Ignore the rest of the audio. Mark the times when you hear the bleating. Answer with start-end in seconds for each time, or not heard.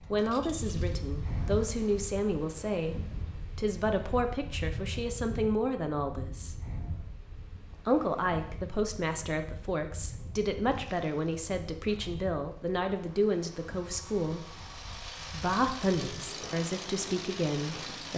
not heard.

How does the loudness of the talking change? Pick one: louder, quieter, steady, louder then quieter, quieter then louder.
steady.